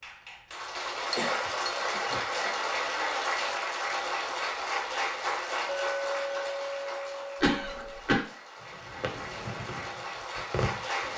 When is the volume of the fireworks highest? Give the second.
11 s.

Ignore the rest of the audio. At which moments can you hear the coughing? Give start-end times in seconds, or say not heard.
1.1-2.6, 7.4-8.2.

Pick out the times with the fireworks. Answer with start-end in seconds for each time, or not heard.
9.0-11.1.